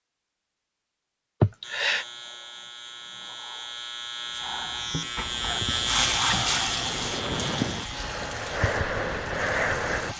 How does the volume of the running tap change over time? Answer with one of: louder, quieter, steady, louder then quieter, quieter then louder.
quieter.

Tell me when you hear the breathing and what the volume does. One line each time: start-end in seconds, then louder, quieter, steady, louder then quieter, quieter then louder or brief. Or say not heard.
4.3-10.1 louder.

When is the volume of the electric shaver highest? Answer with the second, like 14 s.
6 s.